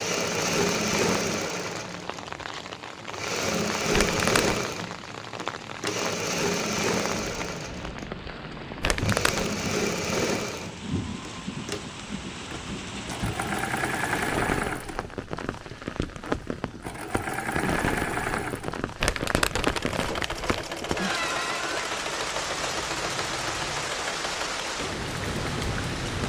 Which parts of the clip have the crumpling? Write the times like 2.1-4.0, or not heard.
3.9-4.5, 8.8-9.6, 19.0-20.6.